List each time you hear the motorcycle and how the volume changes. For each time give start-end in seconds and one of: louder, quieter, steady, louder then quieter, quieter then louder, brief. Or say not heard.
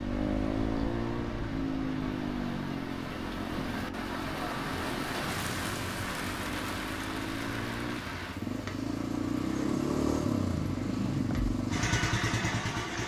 0.0-13.0 quieter then louder.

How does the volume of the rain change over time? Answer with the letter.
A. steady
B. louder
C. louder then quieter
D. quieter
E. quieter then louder
C.